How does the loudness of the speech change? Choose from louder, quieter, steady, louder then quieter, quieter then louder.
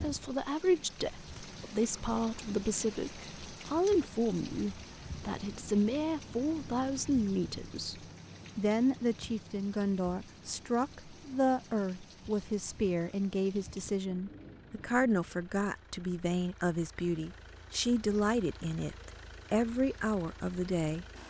steady.